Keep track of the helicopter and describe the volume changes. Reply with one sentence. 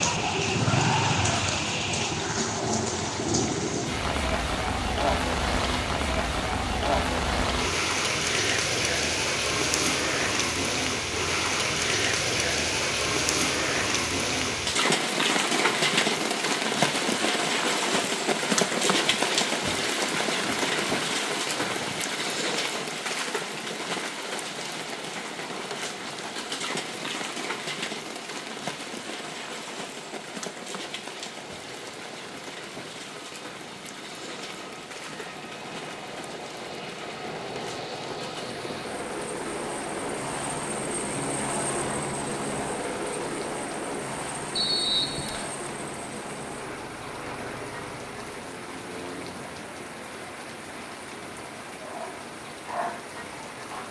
The loudness of the helicopter goes up, then down.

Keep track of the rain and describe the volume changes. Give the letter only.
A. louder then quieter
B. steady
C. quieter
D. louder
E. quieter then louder
C.